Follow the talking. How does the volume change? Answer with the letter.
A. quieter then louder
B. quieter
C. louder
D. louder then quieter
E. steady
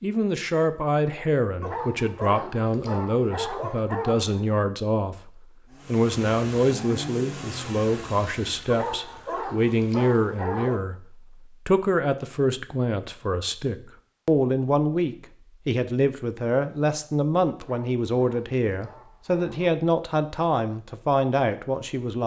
E.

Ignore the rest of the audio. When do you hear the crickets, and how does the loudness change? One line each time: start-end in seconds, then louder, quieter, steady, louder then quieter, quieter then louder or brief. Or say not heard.
not heard.